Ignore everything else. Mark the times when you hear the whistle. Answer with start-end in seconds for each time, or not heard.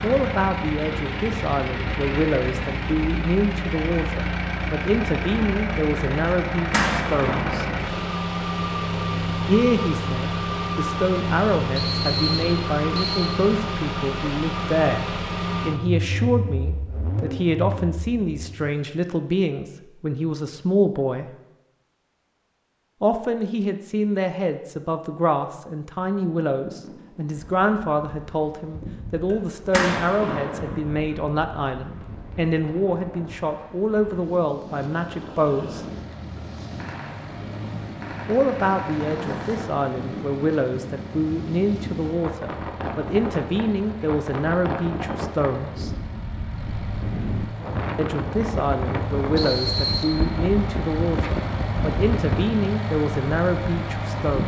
11.8-13.3, 49.4-50.1.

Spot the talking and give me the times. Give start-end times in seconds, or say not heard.
0.0-7.7, 9.4-21.3, 23.0-35.8, 38.2-45.9, 48.0-54.4.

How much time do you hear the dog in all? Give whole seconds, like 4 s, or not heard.
not heard.